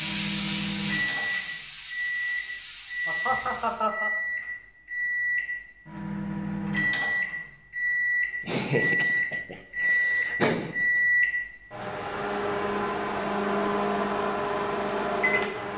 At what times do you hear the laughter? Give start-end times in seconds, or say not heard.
3.0-4.1, 8.4-10.8.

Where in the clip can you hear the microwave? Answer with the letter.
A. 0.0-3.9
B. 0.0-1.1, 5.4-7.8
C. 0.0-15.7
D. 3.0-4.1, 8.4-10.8
C.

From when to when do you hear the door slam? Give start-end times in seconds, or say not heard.
not heard.